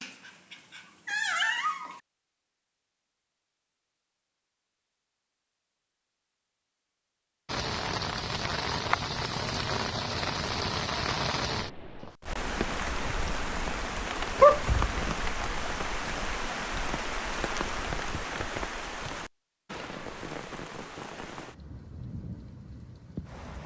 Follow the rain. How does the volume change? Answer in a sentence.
The volume of the rain goes down.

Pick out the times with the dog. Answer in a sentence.
The dog can be heard from 0.0 to 2.0 s and from 14.3 to 14.9 s.